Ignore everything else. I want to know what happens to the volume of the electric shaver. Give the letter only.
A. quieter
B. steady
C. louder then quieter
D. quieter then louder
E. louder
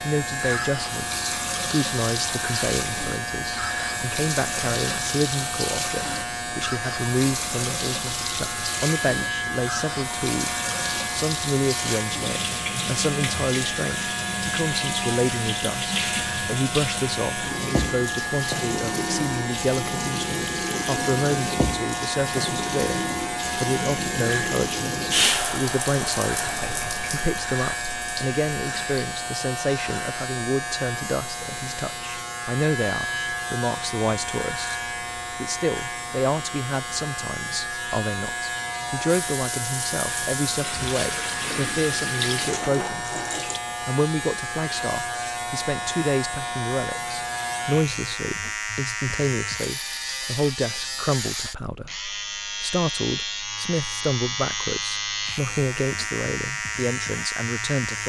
B.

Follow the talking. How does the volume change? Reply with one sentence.
The loudness of the talking stays about the same.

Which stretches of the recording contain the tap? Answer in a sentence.
You can hear the tap from 0.0 to 29.1 s and from 39.0 to 43.6 s.